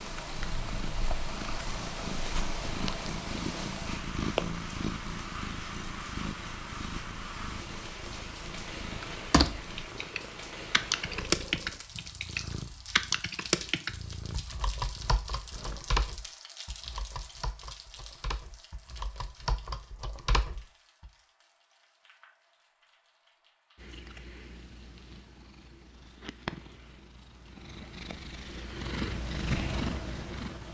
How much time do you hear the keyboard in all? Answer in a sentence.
You can hear the keyboard for 12 seconds altogether.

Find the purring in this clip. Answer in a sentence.
The purring can be heard from 0.0 to 15.8 s and from 23.8 to 30.6 s.